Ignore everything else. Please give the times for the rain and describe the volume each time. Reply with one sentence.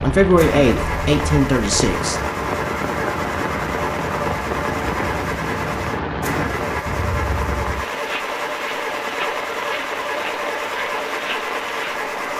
You can hear the rain from 0.0 to 12.3 s, at a steady volume.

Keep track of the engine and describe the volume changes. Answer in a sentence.
The loudness of the engine stays about the same.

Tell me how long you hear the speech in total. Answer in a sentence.
The speech can be heard for 2 seconds in total.